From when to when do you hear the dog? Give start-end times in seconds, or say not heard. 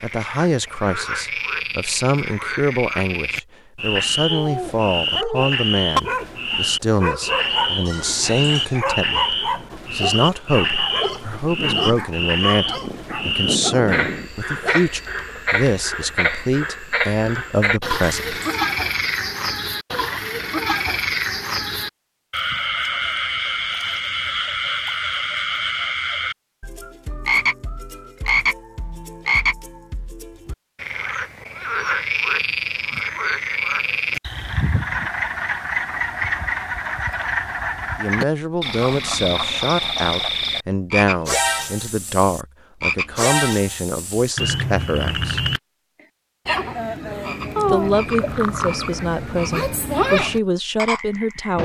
4.3-14.8.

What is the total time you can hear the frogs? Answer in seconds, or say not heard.
51 s.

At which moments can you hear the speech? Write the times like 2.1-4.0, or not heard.
0.0-18.4, 38.0-45.4, 47.7-51.5.